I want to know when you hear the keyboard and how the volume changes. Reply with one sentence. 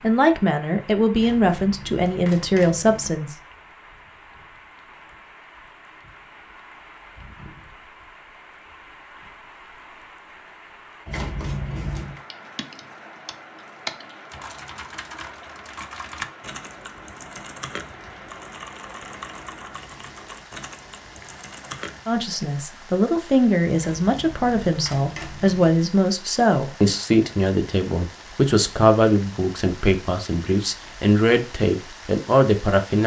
The keyboard can be heard from 12.3 to 22.1 s, getting quieter.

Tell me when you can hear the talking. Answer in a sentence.
The talking can be heard from 0.0 to 3.4 s and from 22.1 to 33.0 s.